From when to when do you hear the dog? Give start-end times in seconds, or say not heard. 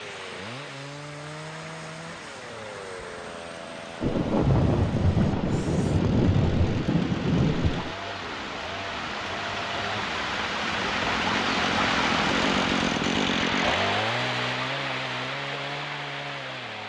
not heard.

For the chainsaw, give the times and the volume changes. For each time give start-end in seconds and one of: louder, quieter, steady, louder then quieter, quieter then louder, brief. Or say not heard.
0.0-16.8 louder.